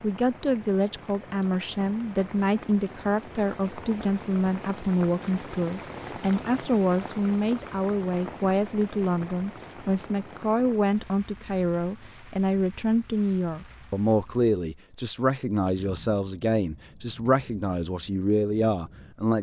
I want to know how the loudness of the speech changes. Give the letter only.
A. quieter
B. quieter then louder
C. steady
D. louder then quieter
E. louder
C.